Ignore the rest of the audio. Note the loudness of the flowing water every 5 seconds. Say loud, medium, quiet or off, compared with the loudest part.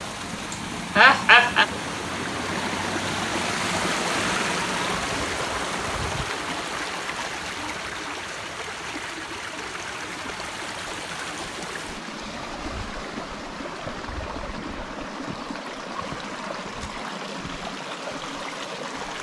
loud, loud, medium, medium.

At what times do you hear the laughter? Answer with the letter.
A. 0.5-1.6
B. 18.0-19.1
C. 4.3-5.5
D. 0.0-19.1
A.